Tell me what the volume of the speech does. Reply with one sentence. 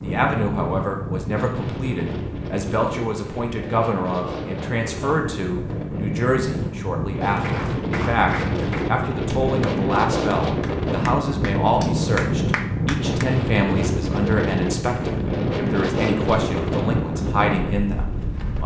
The loudness of the speech stays about the same.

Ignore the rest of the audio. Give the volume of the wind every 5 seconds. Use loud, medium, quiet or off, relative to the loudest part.
medium, loud, loud, loud.